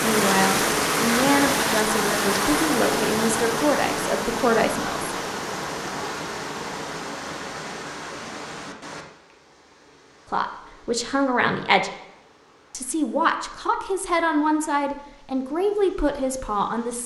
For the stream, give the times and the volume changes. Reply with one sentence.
You can hear the stream from 0.0 to 17.0 s, getting quieter.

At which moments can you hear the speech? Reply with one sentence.
The speech can be heard from 0.0 to 5.2 s, from 10.3 to 11.9 s and from 12.7 to 17.0 s.